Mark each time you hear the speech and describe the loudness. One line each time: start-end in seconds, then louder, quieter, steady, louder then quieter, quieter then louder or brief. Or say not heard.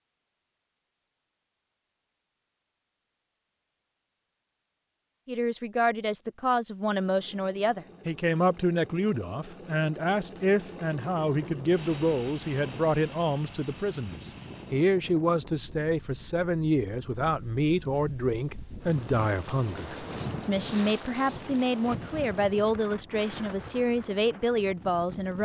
5.2-25.4 steady.